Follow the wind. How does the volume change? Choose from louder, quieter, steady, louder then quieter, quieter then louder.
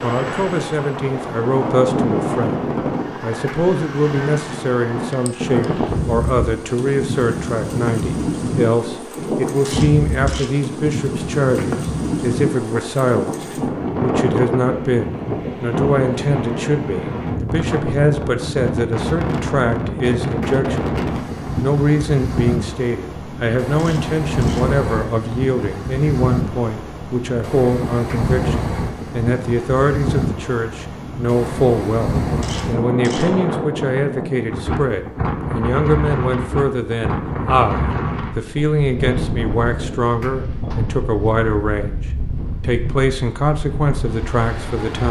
steady.